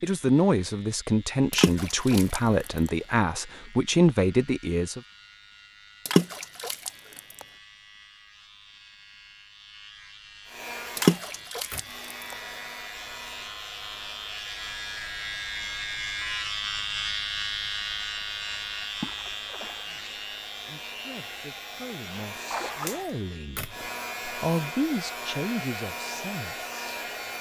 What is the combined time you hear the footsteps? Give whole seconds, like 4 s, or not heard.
not heard.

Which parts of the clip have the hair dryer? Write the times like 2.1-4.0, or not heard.
10.4-27.3.